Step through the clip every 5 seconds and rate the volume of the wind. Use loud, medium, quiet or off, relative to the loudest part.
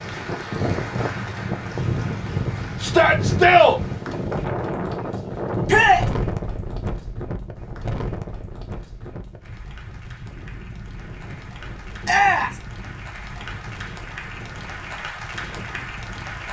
loud, loud, quiet, quiet.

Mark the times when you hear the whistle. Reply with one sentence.
You can't hear the whistle here.